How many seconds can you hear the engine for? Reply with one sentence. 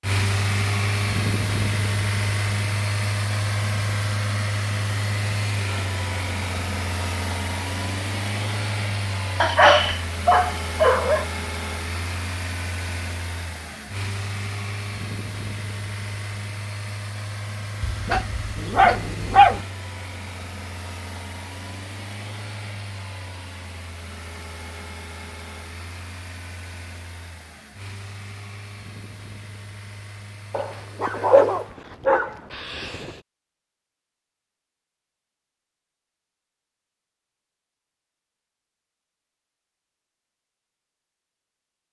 You can hear the engine for 32 seconds altogether.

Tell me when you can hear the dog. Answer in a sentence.
The dog can be heard from 9.4 to 11.2 s, from 17.8 to 19.6 s and from 30.5 to 33.1 s.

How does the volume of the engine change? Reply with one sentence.
The volume of the engine goes down.